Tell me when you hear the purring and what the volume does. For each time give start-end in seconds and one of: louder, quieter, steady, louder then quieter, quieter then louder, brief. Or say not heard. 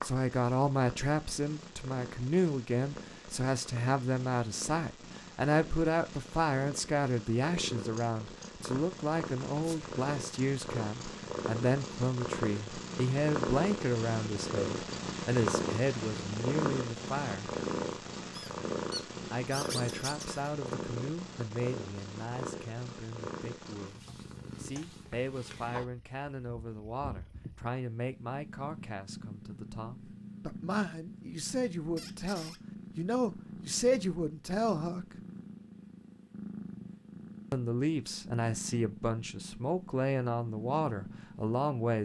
0.0-42.0 louder then quieter.